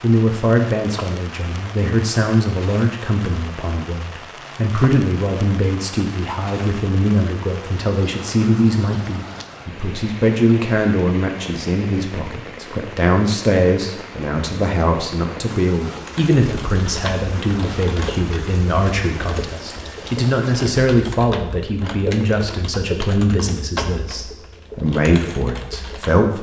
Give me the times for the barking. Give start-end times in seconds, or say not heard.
not heard.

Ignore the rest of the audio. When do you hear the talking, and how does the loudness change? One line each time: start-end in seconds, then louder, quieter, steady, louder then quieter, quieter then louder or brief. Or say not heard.
0.0-26.3 steady.